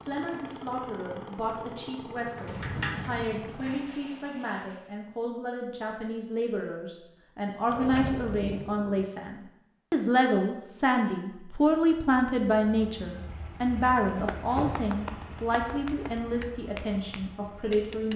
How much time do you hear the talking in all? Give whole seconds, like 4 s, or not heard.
18 s.